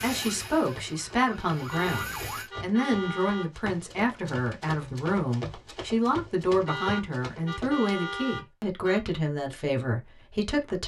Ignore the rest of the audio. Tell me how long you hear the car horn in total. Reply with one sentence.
You can hear the car horn for 4 seconds altogether.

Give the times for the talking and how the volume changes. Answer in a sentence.
You can hear the talking from 0.0 to 10.8 s, at a steady volume.